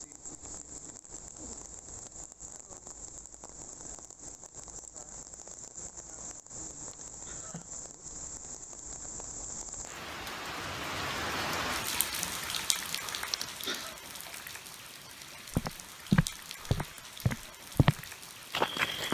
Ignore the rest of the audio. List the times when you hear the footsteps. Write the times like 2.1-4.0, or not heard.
15.5-19.0.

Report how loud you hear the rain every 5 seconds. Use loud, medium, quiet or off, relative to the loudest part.
medium, medium, loud, medium.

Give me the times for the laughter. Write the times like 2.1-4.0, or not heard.
6.9-7.7, 13.3-13.9.